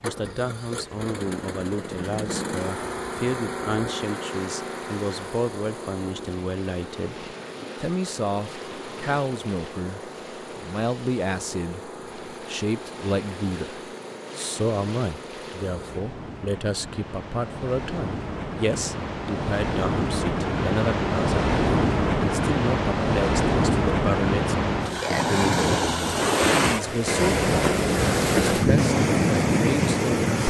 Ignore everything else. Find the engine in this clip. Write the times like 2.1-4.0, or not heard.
0.0-16.1.